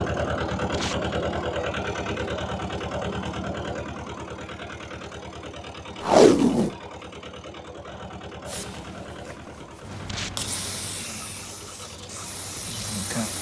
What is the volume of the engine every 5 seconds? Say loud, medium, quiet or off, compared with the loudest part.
loud, medium, quiet.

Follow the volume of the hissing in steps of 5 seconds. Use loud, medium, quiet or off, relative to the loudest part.
off, medium, loud.